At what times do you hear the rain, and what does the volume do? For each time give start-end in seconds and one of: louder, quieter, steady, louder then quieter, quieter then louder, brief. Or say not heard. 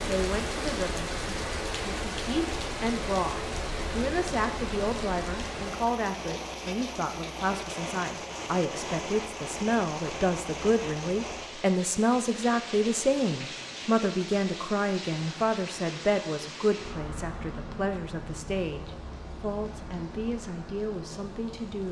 0.0-21.8 quieter.